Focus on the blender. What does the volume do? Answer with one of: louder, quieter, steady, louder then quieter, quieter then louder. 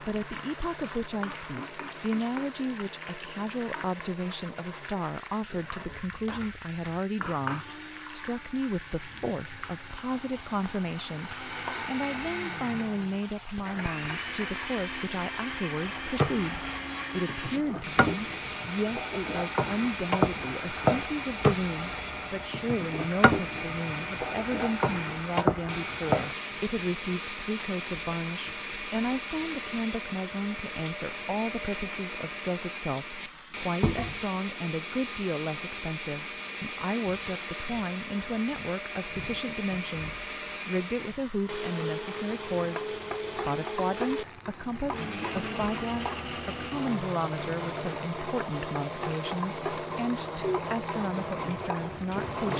louder.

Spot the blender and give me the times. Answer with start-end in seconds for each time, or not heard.
0.0-52.5.